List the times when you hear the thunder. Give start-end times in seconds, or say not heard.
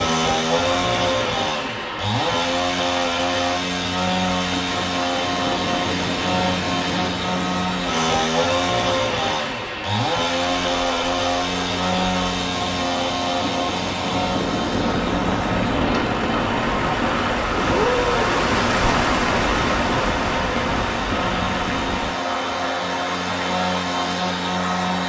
4.5-7.8, 13.3-16.9.